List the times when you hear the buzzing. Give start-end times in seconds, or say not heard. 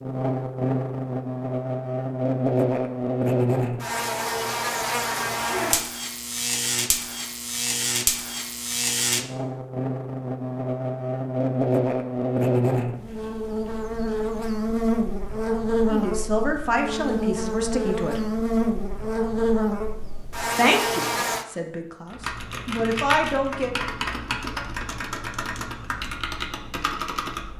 0.0-21.4.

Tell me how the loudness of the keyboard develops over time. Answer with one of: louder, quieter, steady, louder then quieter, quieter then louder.
steady.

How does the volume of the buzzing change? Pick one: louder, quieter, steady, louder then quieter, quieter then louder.
steady.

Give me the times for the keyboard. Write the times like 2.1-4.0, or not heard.
22.1-27.5.